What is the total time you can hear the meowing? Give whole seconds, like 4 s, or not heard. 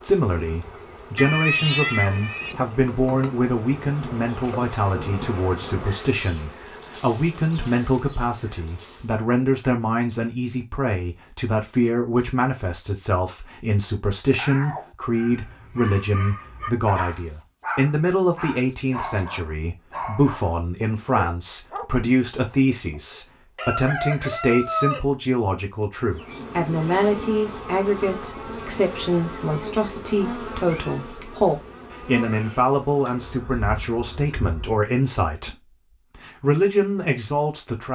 4 s.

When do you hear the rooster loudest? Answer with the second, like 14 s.
25 s.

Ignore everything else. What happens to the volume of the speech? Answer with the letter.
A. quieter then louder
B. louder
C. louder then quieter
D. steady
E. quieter
D.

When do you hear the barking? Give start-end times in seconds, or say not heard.
15.1-21.9.